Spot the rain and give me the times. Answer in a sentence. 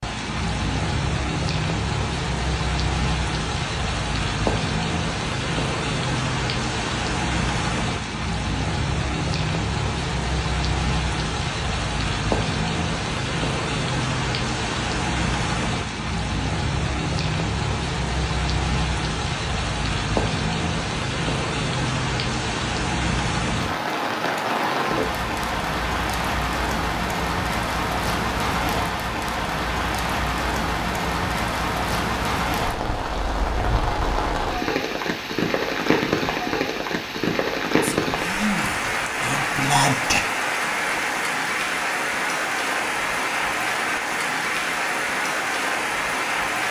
The rain can be heard from 0.0 to 46.6 s.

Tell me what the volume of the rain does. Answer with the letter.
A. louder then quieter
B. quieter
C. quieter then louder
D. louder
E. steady
E.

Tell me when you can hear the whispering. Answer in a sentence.
The whispering can be heard from 37.8 to 40.2 s.